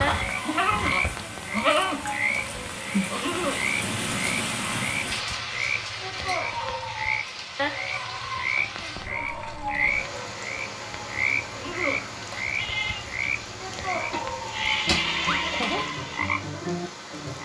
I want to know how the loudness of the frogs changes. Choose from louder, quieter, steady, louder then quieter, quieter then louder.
steady.